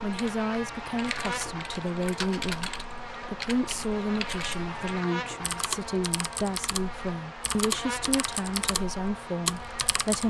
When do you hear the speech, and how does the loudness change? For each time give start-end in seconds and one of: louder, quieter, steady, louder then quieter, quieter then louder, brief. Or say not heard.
0.0-10.2 steady.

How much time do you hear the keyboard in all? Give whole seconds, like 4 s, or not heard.
10 s.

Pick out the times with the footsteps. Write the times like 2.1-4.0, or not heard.
not heard.